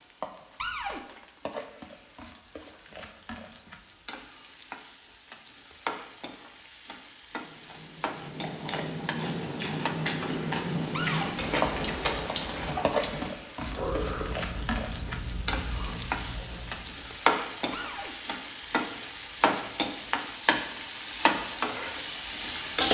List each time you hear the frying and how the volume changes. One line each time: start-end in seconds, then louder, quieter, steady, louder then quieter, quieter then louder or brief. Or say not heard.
0.0-22.8 louder.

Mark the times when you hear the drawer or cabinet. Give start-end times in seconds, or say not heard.
0.6-1.0, 10.9-11.3, 17.7-18.1.